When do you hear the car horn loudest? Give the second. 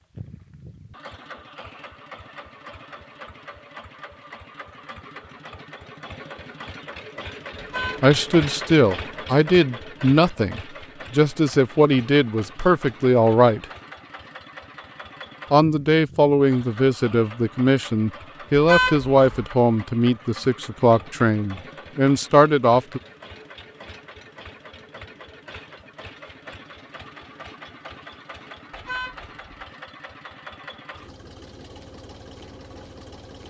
19 s.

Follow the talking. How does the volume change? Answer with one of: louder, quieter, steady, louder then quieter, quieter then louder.
steady.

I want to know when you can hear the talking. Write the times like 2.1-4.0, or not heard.
8.0-13.7, 15.5-23.0.